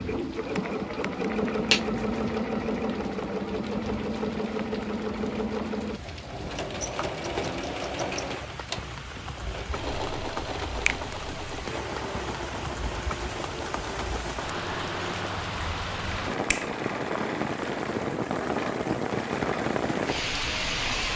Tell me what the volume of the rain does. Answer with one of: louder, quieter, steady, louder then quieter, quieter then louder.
louder.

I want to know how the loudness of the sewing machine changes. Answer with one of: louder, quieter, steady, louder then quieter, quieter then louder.
quieter.